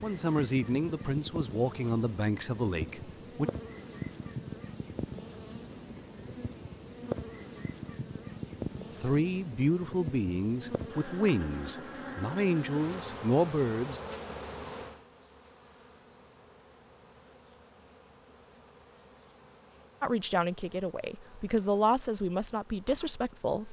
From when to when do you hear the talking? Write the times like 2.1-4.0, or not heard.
0.0-3.5, 8.9-14.0, 20.0-23.6.